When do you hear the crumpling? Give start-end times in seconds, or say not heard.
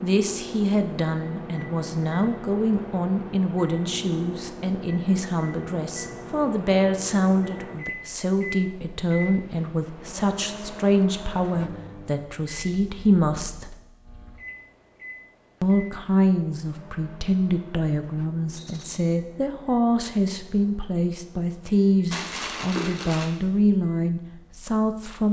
22.1-23.3.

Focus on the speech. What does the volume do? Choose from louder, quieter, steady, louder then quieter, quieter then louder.
steady.